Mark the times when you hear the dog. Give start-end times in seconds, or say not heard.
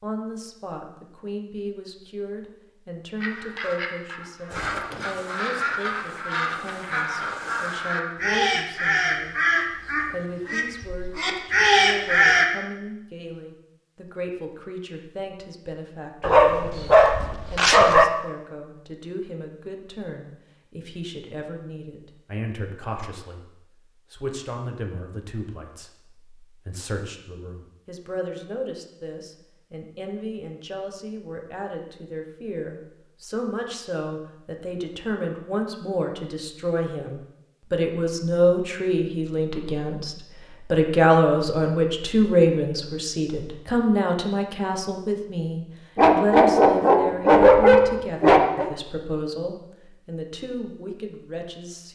16.2-18.1, 46.0-48.6.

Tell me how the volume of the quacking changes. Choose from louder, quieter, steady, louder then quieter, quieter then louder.
louder.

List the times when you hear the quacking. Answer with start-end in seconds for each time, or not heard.
3.2-12.4.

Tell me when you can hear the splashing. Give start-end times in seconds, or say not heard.
not heard.